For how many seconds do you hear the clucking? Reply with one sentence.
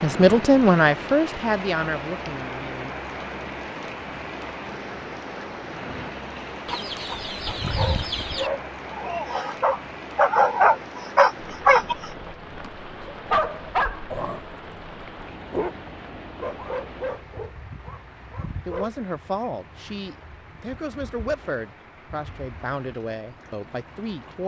You can hear the clucking for 2 seconds altogether.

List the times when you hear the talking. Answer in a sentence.
The talking can be heard from 0.0 to 3.0 s and from 18.6 to 24.4 s.